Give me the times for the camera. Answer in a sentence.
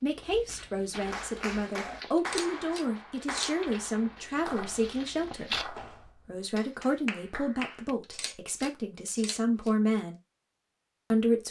You can hear the camera from 2.1 to 3.5 s and from 8.0 to 9.7 s.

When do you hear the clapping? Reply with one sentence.
The clapping can be heard from 1.1 to 8.0 s.